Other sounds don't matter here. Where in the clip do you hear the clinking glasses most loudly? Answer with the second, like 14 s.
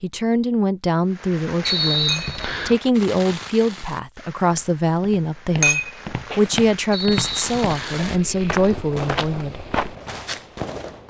6 s.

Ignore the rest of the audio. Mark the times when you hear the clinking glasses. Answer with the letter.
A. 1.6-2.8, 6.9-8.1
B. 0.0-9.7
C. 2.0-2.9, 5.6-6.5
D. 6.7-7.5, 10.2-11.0
C.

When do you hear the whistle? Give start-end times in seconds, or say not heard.
1.6-2.8, 6.9-8.1.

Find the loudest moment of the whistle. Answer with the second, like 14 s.
2 s.